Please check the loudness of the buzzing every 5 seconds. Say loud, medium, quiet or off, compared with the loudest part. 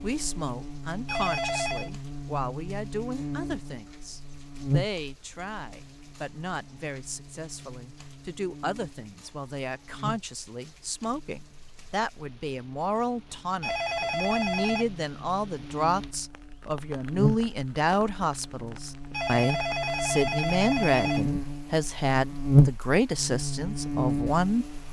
medium, quiet, quiet, medium, loud.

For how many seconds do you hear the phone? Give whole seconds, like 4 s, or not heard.
4 s.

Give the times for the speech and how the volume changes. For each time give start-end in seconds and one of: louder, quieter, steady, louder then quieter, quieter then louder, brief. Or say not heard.
0.0-24.8 louder.